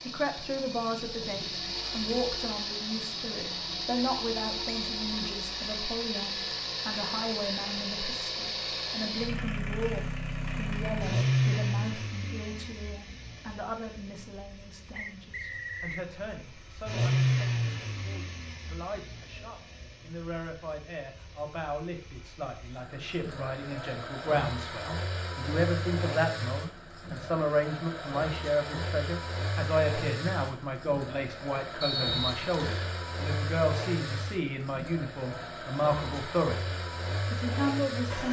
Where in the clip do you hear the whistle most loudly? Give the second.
32 s.